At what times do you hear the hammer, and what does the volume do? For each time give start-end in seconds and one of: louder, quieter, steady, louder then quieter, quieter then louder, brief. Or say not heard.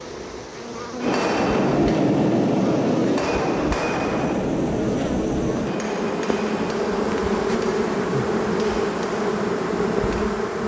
1.0-10.3 quieter.